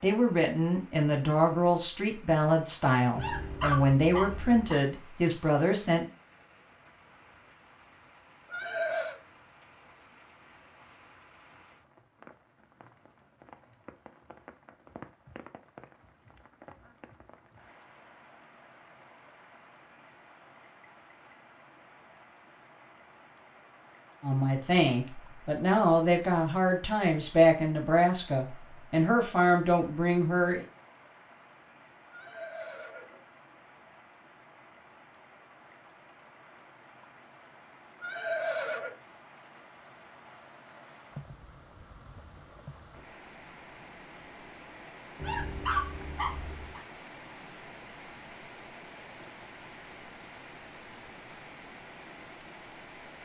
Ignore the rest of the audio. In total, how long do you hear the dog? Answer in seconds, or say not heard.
3 s.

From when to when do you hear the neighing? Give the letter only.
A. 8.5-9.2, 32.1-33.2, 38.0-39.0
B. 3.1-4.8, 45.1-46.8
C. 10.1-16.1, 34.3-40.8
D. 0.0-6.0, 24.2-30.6
A.